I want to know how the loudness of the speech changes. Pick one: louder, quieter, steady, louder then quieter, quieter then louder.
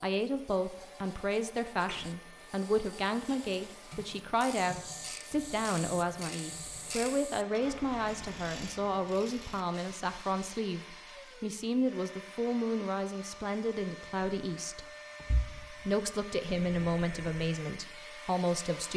steady.